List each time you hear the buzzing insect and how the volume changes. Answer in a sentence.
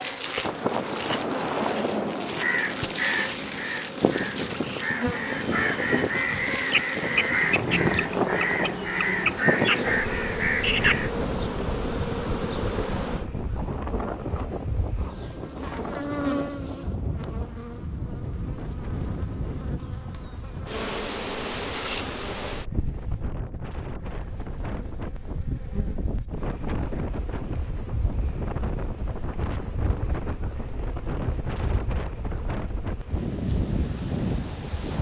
The buzzing insect can be heard from 0.0 to 34.8 s, getting quieter.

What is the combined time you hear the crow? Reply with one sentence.
The crow can be heard for 9 seconds in total.